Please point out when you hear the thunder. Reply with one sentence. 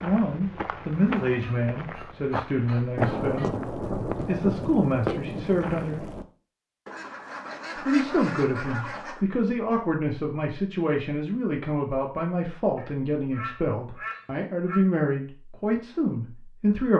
You can hear the thunder from 3.0 to 6.2 s.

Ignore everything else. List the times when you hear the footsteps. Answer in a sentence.
You can hear the footsteps from 0.0 to 6.1 s.